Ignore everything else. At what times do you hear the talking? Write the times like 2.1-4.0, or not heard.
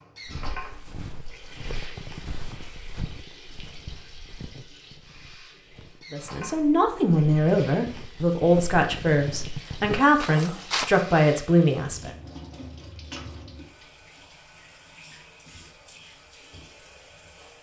6.1-12.1.